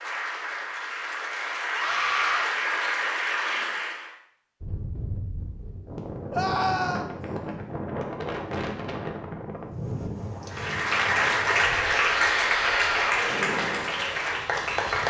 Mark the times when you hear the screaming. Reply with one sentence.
You can hear the screaming from 1.7 to 2.5 s, from 6.3 to 7.0 s and from 12.2 to 13.2 s.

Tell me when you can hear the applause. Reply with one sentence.
You can hear the applause from 0.0 to 4.1 s and from 10.5 to 15.0 s.